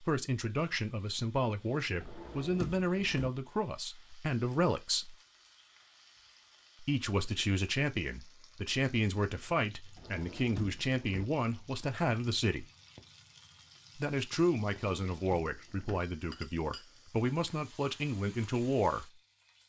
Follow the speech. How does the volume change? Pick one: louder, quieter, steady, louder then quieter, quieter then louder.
steady.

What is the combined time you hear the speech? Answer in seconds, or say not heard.
16 s.